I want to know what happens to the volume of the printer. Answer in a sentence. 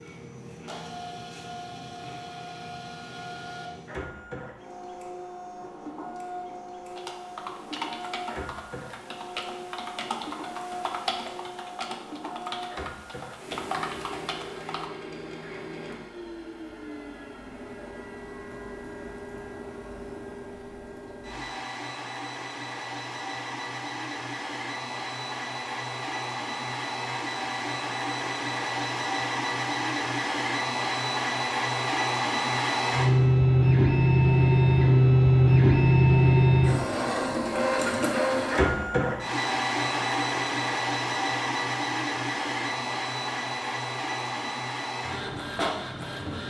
The loudness of the printer goes up, then down.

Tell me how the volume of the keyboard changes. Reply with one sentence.
The loudness of the keyboard stays about the same.